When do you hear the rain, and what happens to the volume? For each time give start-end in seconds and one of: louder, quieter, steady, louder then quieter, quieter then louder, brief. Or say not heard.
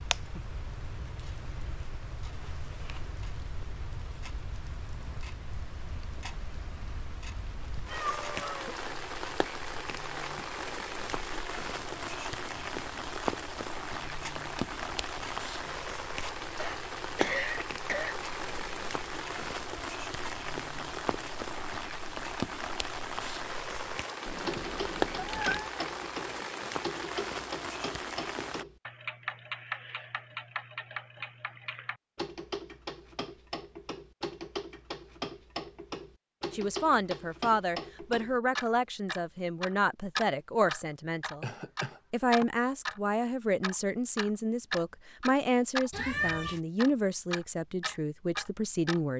0.0-28.6 louder.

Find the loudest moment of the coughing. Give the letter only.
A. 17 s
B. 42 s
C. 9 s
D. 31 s
A.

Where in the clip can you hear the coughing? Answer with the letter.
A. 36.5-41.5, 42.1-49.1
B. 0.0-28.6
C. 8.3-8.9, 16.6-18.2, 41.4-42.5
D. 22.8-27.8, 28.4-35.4
C.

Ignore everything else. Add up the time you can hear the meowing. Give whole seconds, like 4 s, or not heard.
3 s.